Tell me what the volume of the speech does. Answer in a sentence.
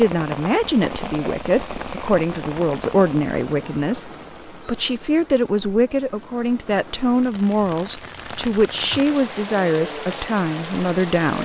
The loudness of the speech stays about the same.